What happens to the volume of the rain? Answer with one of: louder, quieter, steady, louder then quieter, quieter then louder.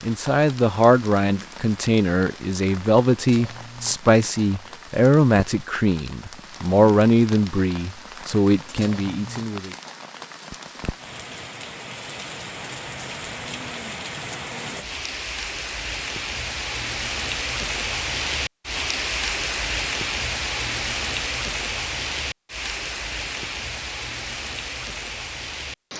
louder.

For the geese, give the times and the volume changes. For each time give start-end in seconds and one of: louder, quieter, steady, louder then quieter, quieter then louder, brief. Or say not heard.
not heard.